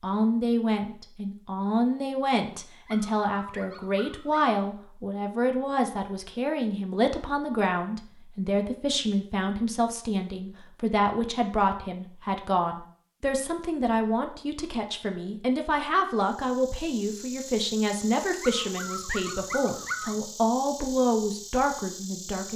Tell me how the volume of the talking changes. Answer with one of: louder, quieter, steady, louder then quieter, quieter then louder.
steady.